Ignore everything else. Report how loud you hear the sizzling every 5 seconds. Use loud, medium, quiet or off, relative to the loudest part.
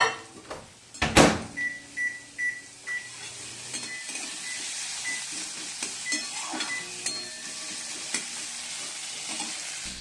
medium, loud.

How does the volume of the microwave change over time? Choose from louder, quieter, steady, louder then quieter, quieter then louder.
quieter then louder.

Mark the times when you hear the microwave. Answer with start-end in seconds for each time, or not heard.
0.0-7.3.